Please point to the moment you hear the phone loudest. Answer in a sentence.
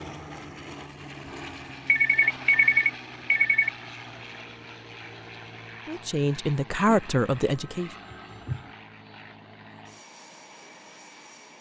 The loudest moment of the phone is at 3 seconds.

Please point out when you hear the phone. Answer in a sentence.
You can hear the phone from 1.9 to 3.7 s and from 6.8 to 8.8 s.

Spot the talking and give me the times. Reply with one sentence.
You can hear the talking from 5.8 to 7.9 s.